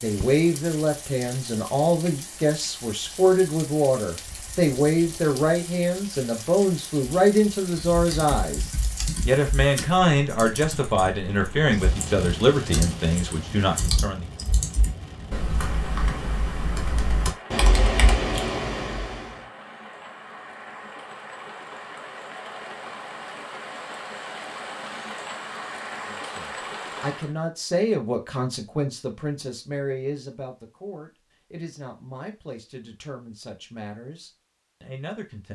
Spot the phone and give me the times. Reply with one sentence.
You can't hear the phone here.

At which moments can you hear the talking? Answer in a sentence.
The talking can be heard from 0.0 to 14.2 s and from 26.1 to 35.5 s.